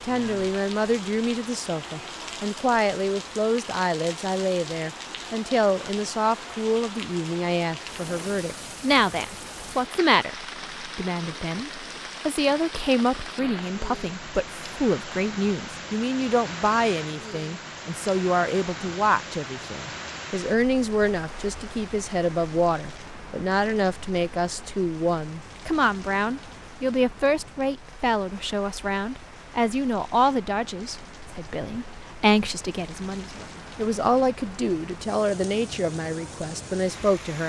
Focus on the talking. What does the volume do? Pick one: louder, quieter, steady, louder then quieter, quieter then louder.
steady.